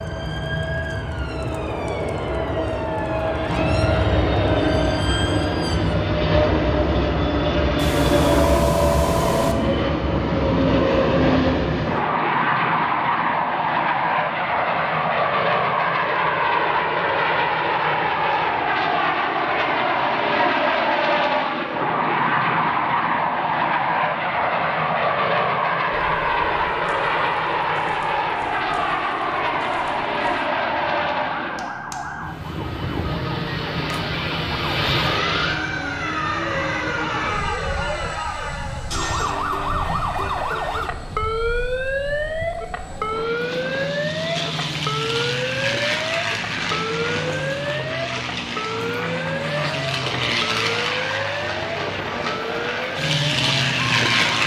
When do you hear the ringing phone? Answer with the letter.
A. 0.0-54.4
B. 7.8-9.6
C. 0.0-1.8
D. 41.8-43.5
B.